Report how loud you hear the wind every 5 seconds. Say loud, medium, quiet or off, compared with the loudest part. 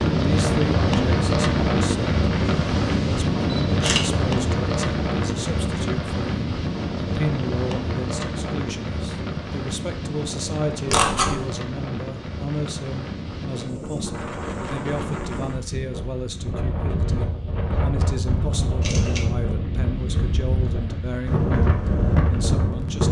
loud, medium, medium, medium, loud.